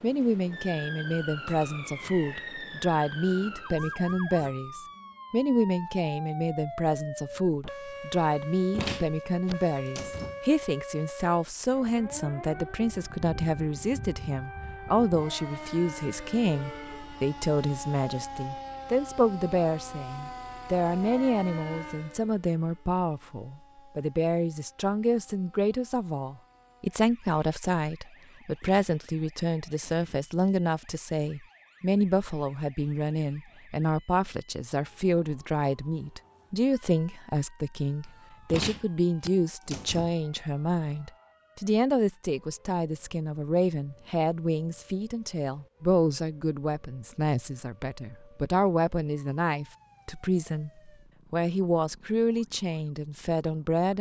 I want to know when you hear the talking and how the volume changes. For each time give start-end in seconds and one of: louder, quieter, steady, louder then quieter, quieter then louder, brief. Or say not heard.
0.0-53.9 steady.